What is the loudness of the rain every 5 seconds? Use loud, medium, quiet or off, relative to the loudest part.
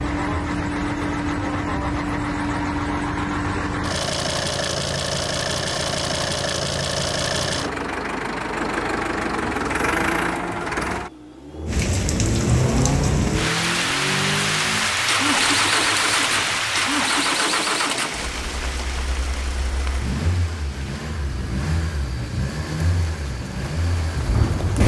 off, off, loud, loud, medium.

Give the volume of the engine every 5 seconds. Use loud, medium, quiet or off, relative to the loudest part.
loud, loud, loud, loud, medium.